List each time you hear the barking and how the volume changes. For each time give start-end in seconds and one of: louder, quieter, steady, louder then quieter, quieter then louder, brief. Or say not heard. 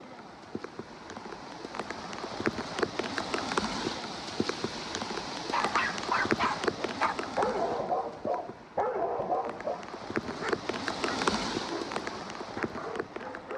5.5-13.5 quieter.